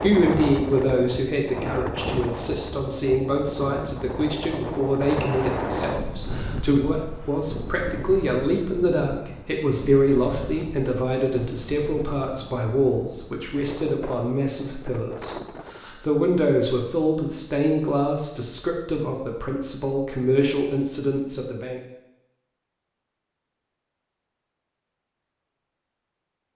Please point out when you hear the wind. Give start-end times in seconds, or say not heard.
0.0-15.9.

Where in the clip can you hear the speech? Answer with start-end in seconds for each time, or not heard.
0.0-21.8.